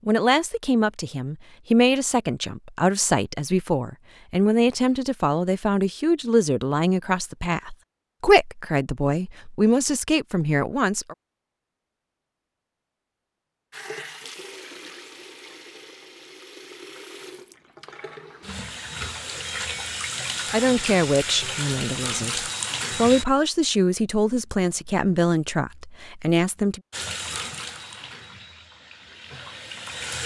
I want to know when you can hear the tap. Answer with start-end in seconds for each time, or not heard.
13.7-23.2, 26.9-30.2.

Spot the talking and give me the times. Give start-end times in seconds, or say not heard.
0.1-11.2, 20.5-26.8.